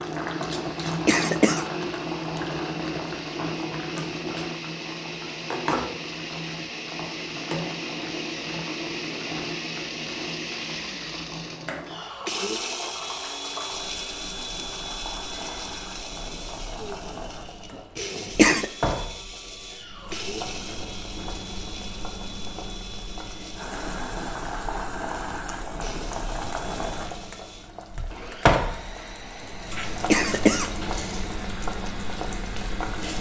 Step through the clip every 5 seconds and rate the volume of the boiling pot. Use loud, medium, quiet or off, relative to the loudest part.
loud, loud, medium, medium, medium, loud, loud.